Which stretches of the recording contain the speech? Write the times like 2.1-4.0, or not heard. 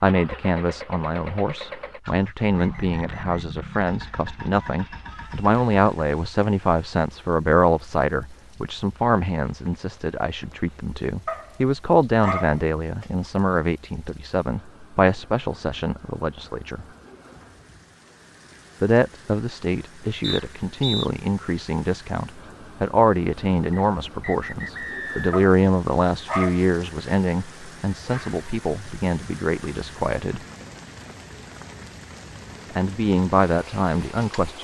0.0-16.9, 18.8-30.4, 32.7-34.5.